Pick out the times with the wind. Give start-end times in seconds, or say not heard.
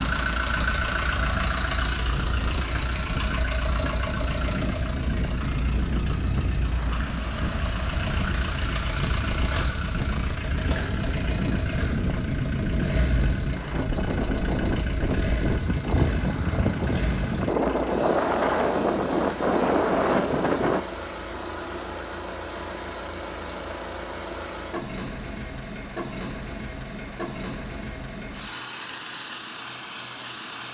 0.0-20.8.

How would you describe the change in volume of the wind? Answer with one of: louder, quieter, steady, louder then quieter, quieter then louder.
louder.